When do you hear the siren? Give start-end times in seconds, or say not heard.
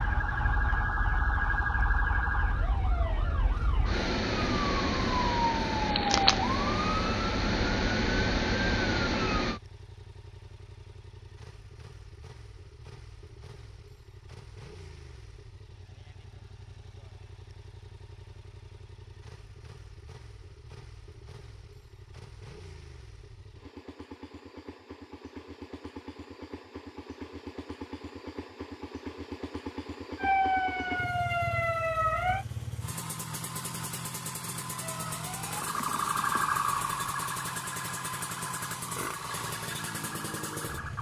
0.0-9.6, 30.1-32.5, 34.8-40.9.